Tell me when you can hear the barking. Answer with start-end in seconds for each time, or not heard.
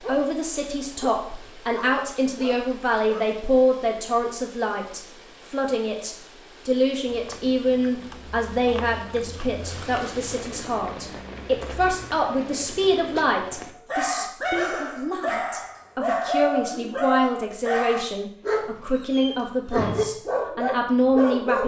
0.0-3.5, 13.7-21.6.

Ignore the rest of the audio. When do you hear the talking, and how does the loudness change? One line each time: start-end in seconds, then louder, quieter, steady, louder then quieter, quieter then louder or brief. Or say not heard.
0.1-21.6 steady.